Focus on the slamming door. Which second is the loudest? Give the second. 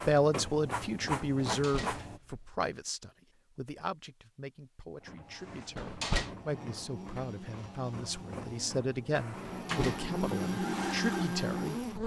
6 s.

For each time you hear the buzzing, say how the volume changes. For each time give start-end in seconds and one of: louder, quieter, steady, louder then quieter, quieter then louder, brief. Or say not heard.
5.2-12.0 louder.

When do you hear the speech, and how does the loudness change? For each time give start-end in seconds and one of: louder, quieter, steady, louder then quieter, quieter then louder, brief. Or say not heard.
0.1-11.8 quieter then louder.